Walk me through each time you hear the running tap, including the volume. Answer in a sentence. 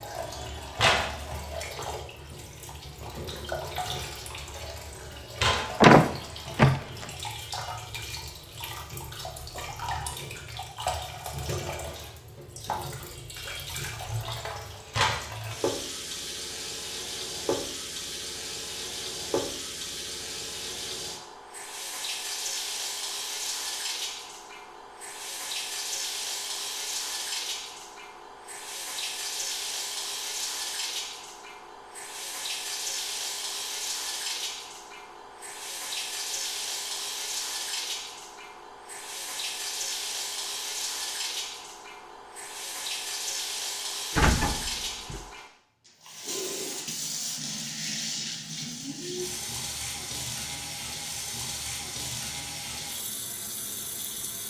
You can hear the running tap from 0.0 to 54.4 s, at a steady volume.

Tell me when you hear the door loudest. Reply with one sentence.
The volume of the door peaks at 6 seconds.